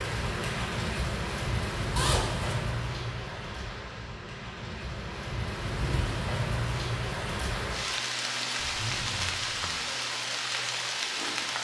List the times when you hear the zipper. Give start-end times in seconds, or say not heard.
1.9-2.5, 8.6-9.8.